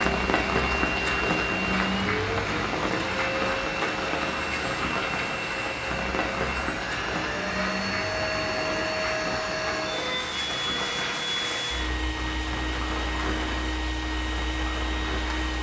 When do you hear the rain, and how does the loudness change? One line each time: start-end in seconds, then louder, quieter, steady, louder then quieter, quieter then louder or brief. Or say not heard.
0.0-15.5 quieter.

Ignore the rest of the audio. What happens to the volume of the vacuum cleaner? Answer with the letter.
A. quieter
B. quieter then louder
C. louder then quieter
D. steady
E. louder
D.